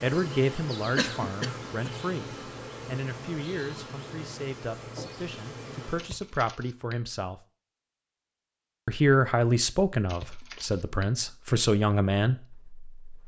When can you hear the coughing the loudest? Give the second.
1 s.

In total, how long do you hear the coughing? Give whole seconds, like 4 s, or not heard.
3 s.